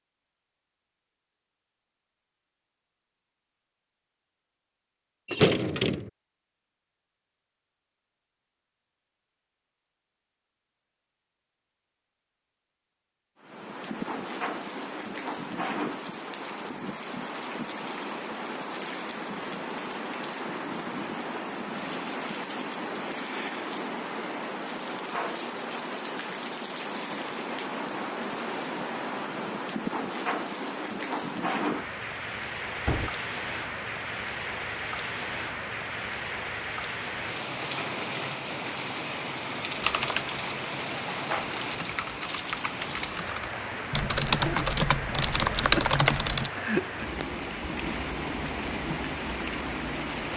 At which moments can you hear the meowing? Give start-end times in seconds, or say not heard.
not heard.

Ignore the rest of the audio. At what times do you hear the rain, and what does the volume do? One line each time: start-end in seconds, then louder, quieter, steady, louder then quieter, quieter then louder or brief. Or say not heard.
13.4-50.3 steady.